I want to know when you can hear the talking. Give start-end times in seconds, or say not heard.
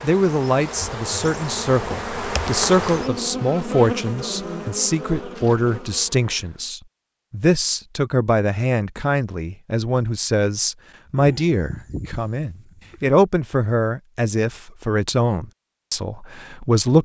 0.0-16.9.